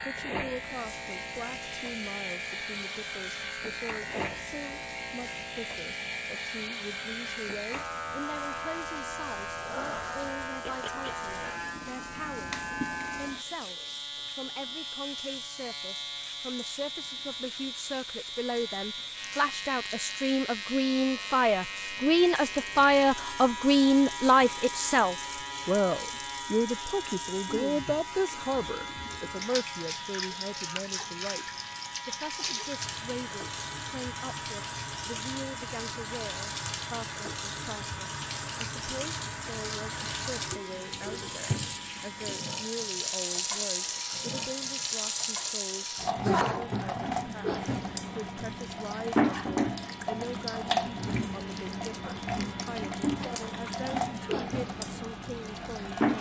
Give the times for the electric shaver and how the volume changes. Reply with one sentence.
You can hear the electric shaver from 0.0 to 56.1 s, getting quieter.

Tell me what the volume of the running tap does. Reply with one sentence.
The volume of the running tap goes up.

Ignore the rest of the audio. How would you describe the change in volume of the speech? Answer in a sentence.
The loudness of the speech goes up, then down.